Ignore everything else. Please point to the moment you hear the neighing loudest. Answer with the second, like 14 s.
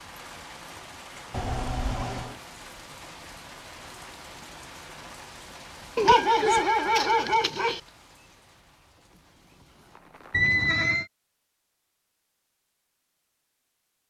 11 s.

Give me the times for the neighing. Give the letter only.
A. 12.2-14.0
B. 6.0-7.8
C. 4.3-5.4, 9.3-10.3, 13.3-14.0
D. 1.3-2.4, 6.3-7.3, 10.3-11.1
D.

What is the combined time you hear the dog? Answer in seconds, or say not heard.
2 s.